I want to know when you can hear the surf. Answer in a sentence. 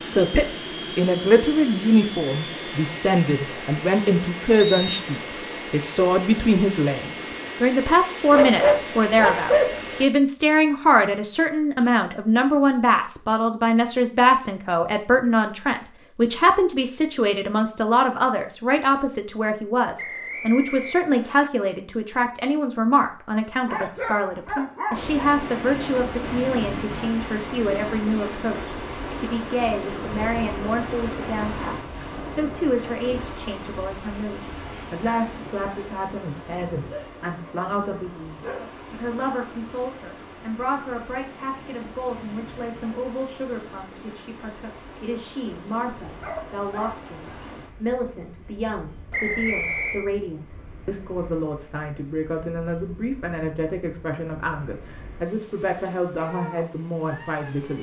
You can hear the surf from 24.9 to 57.7 s.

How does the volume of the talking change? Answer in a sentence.
The volume of the talking goes down.